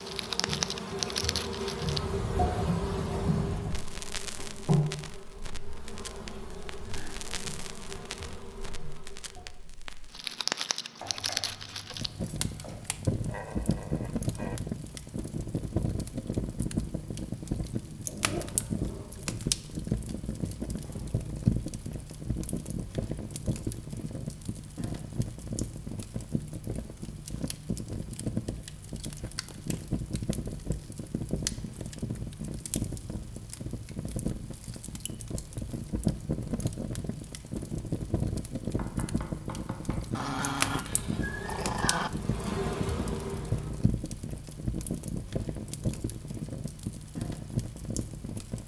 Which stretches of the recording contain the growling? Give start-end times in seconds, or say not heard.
13.2-14.6, 18.1-19.2, 40.1-42.1.